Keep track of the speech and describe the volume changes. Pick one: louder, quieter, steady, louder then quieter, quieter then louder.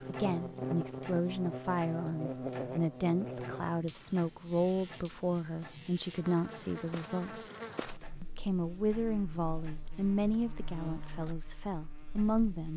steady.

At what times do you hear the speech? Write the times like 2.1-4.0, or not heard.
0.1-7.4, 8.2-12.7.